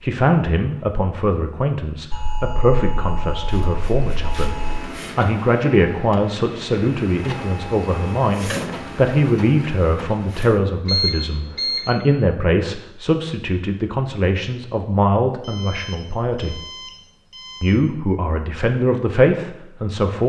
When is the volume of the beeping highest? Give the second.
11 s.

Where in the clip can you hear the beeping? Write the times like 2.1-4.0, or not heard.
2.1-4.9, 10.8-11.8, 15.4-17.8.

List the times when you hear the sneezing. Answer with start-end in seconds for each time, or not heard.
not heard.